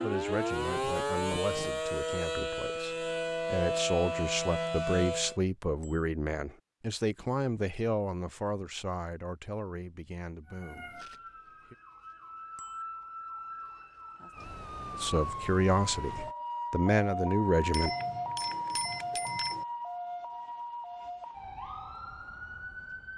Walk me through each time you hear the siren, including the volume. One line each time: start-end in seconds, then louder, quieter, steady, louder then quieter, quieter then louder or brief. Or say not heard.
0.0-5.4 steady
10.4-23.1 louder then quieter.